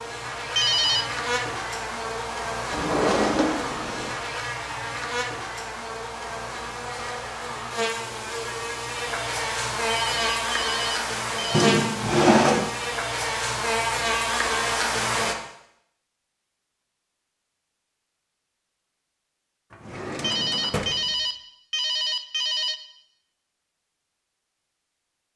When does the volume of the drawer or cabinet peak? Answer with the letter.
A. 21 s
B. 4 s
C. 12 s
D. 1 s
C.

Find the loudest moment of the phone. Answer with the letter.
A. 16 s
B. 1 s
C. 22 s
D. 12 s
B.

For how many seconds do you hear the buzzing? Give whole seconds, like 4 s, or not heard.
15 s.